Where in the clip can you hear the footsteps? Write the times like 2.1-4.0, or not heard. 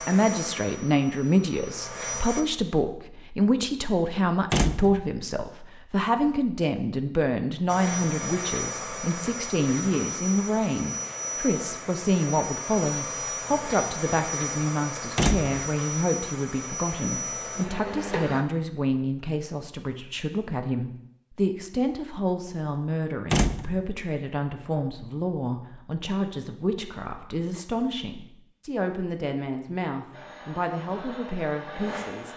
not heard.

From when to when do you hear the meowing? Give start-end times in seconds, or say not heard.
not heard.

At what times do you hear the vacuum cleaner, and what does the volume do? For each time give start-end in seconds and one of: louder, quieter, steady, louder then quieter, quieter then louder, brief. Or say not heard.
0.0-2.5 brief
7.7-18.4 steady
30.1-32.3 brief.